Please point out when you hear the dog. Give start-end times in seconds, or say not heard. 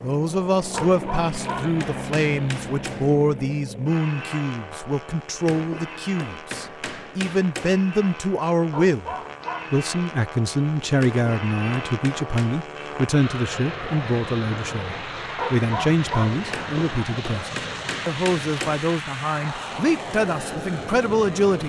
0.7-1.8, 8.7-9.8, 15.3-16.4.